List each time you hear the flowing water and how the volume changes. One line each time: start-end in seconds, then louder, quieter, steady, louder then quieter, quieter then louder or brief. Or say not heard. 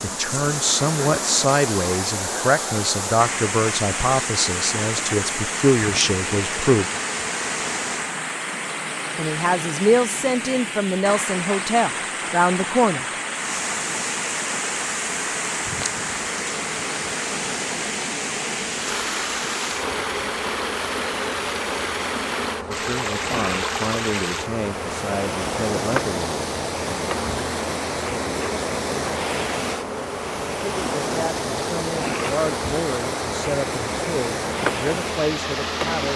0.0-36.1 steady.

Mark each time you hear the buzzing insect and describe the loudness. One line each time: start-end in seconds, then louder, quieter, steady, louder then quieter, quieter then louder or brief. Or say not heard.
0.0-8.2 steady
13.2-36.1 steady.